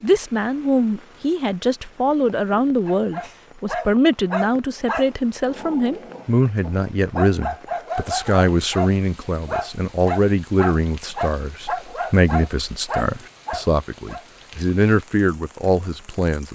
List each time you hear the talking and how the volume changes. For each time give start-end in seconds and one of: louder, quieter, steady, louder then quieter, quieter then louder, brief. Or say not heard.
0.0-16.5 steady.